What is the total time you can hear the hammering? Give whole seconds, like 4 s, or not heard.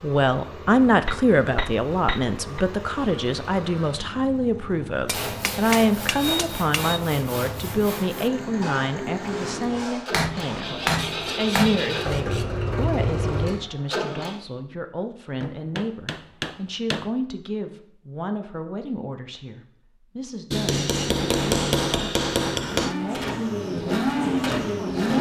10 s.